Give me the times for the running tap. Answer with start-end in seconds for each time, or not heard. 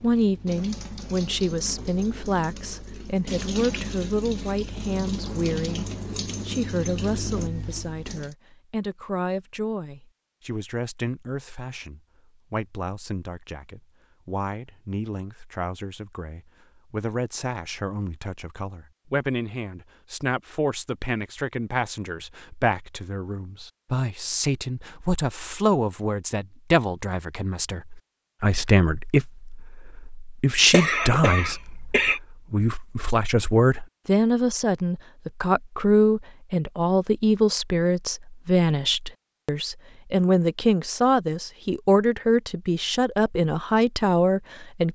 0.0-8.3.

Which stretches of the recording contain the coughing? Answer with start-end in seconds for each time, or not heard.
30.7-32.2.